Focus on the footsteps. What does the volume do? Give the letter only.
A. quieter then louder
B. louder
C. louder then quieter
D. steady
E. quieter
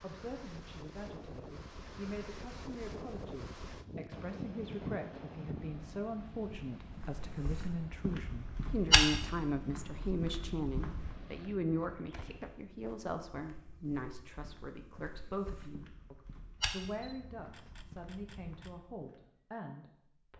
A.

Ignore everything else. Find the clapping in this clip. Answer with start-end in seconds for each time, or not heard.
not heard.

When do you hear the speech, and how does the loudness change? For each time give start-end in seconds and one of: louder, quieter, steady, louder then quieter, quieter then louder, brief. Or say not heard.
0.0-20.3 louder then quieter.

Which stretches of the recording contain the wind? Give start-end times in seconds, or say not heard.
0.0-12.6.